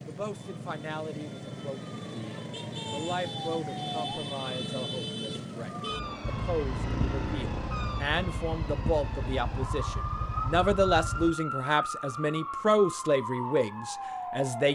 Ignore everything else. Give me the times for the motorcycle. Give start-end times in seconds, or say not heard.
6.2-11.3.